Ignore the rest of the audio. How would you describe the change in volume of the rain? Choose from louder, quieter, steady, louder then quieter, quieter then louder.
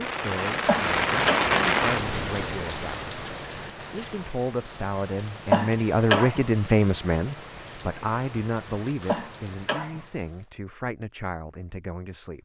quieter.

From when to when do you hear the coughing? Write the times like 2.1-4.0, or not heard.
0.7-1.6, 5.5-6.5, 9.1-10.1.